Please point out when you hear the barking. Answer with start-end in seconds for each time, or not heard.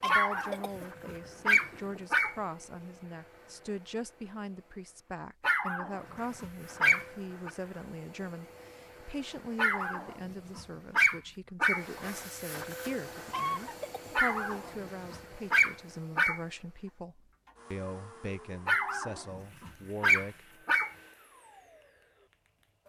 0.1-2.4, 5.4-7.5, 9.6-11.8, 14.2-16.4, 18.6-20.9.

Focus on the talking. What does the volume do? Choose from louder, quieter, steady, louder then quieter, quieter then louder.
steady.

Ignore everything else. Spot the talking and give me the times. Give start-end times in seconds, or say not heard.
0.0-20.5.